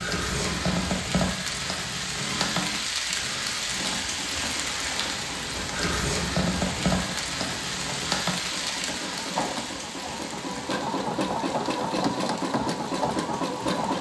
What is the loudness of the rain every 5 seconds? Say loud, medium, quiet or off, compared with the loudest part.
loud, loud, quiet.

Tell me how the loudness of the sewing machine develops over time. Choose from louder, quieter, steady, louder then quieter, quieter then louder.
louder.